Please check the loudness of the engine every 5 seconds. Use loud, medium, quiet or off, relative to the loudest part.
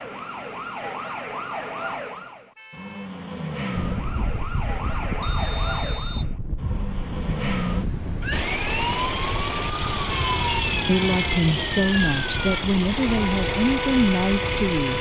off, loud, loud.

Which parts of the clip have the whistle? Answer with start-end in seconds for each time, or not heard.
5.2-6.3.